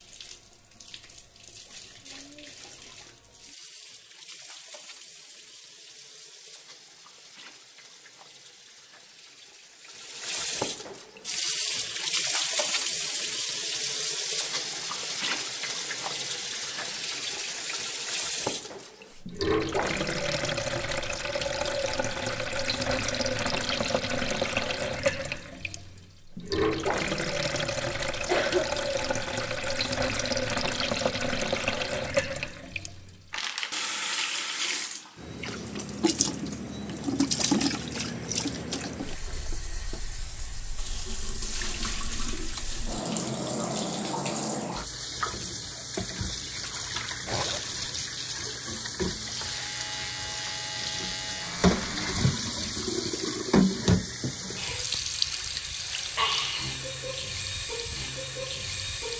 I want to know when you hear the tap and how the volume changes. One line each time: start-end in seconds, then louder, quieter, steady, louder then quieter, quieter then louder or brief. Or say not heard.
0.0-59.1 louder.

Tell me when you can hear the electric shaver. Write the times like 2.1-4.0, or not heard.
49.4-52.2.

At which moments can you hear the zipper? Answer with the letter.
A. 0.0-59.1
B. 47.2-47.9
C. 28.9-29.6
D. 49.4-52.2
B.